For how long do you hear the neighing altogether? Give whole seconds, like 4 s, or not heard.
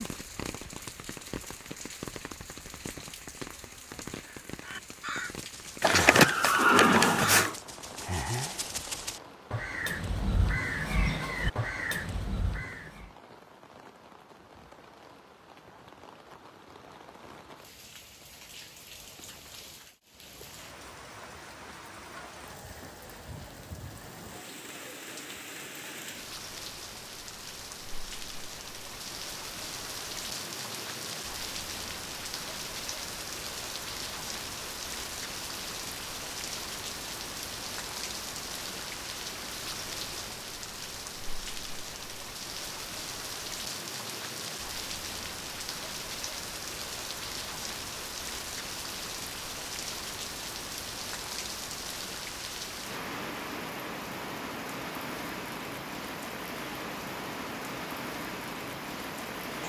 2 s.